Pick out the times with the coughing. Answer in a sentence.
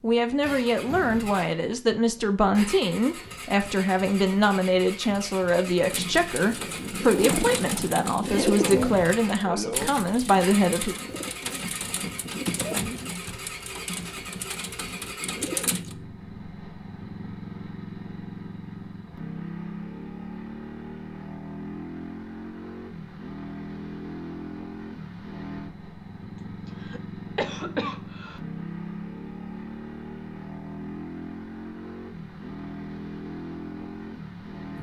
You can hear the coughing from 8.3 to 9.9 s and from 26.8 to 28.4 s.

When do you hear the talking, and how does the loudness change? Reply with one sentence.
You can hear the talking from 0.0 to 10.9 s, at a steady volume.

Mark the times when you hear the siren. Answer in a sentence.
You can't hear the siren here.